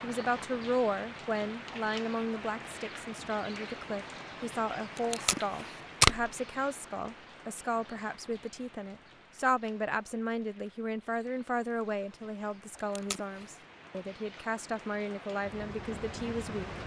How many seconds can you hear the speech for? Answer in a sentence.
You can hear the speech for 17 seconds altogether.